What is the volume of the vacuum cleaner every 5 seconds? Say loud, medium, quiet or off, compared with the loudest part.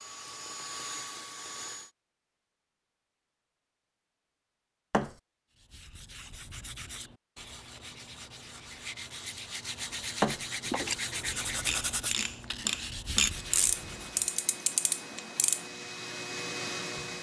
loud, off, medium, loud.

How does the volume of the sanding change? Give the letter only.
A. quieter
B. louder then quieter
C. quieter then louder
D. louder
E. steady
B.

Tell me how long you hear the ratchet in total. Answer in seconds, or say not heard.
5 s.